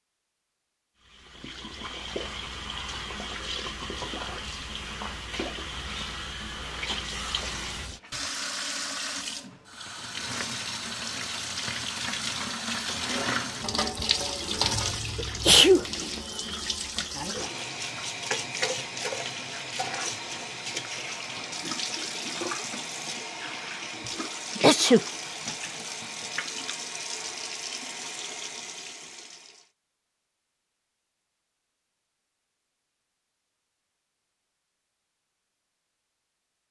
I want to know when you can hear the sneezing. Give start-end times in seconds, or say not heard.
14.7-15.8, 24.6-25.1.